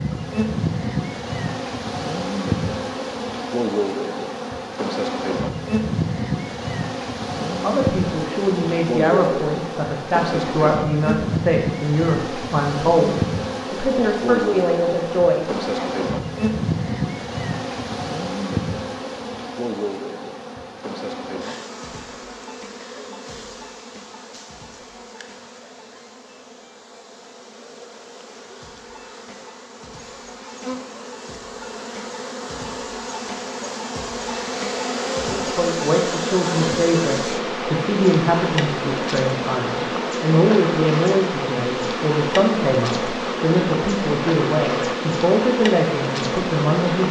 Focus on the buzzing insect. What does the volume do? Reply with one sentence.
The loudness of the buzzing insect goes down, then up.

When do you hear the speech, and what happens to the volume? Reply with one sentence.
The speech can be heard from 7.5 to 15.9 s, at a steady volume; and from 35.2 to 47.0 s, at a steady volume.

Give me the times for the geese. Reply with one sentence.
You can't hear the geese here.